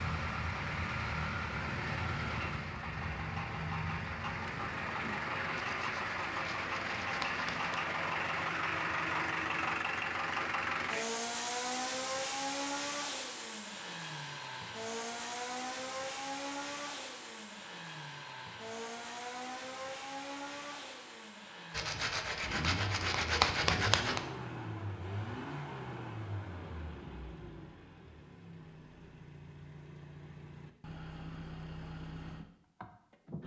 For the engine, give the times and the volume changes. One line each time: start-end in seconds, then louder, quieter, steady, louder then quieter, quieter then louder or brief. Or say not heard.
0.0-33.4 quieter.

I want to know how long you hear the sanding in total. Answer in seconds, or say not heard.
5 s.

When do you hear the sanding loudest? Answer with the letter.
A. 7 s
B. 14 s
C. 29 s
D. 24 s
D.